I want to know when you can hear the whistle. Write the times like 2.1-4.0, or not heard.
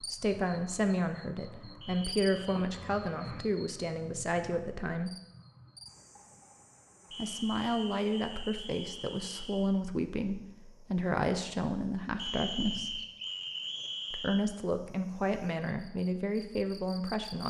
1.8-2.6, 7.1-9.7, 12.2-14.4.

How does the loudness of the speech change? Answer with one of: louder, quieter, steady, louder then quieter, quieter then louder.
steady.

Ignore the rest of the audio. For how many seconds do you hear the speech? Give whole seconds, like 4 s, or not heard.
14 s.